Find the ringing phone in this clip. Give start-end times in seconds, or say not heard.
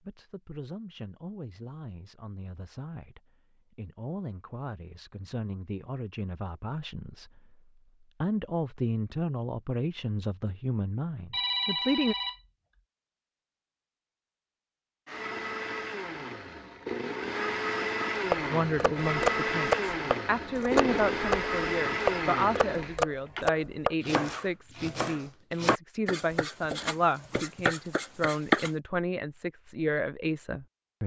11.3-12.4.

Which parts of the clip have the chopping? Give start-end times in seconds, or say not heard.
18.3-28.7.